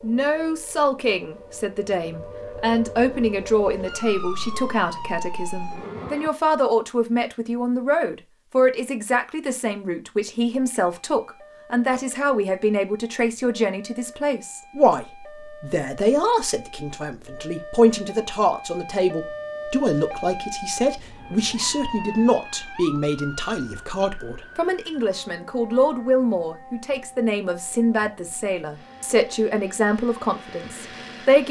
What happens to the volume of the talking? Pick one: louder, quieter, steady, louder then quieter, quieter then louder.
steady.